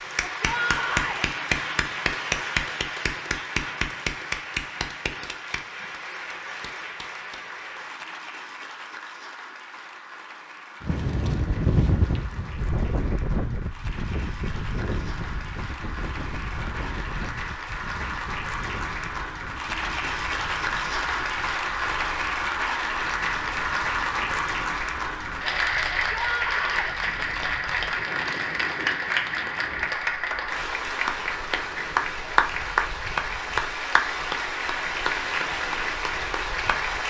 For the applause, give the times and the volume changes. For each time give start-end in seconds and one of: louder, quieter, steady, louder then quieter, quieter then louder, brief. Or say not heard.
0.0-37.0 quieter then louder.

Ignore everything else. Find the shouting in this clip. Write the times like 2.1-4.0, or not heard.
0.2-1.2, 25.9-26.9.